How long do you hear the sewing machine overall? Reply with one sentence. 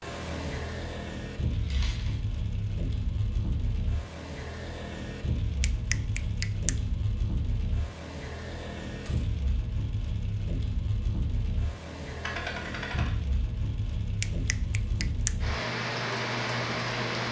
You can't hear the sewing machine here.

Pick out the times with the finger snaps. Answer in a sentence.
The finger snaps can be heard from 5.6 to 6.8 s and from 14.2 to 15.4 s.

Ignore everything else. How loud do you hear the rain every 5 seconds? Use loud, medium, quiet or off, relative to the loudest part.
medium, medium, medium, loud.